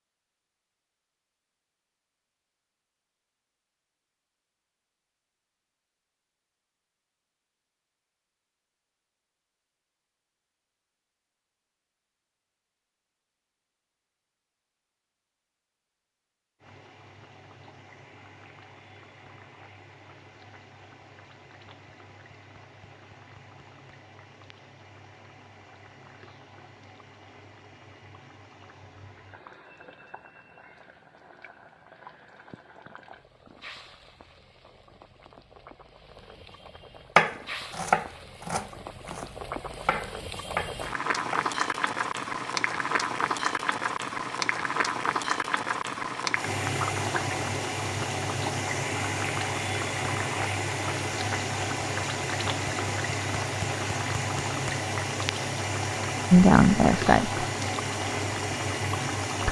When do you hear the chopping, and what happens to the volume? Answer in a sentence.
The chopping can be heard from 37.1 to 41.5 s, getting quieter then louder.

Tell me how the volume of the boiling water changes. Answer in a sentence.
The volume of the boiling water goes up.